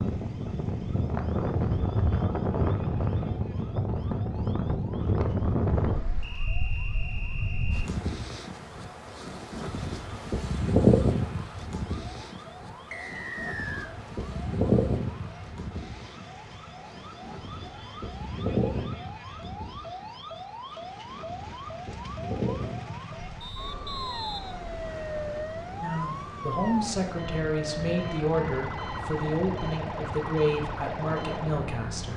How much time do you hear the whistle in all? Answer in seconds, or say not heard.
5 s.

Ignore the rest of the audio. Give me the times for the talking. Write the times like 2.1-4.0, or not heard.
25.8-32.1.